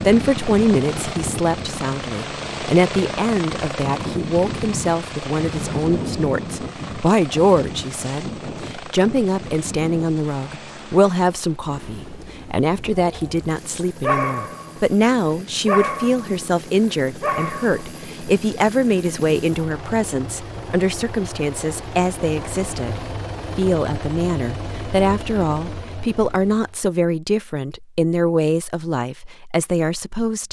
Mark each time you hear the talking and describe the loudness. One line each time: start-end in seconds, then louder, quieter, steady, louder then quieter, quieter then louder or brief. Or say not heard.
0.0-30.4 steady.